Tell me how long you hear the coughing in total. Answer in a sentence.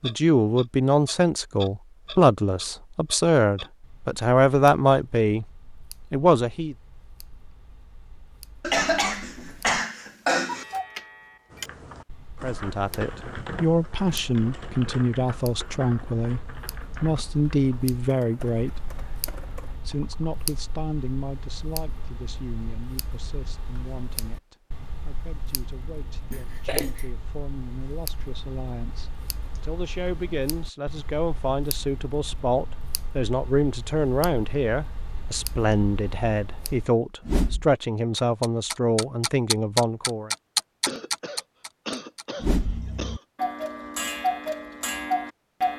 You can hear the coughing for 5 seconds altogether.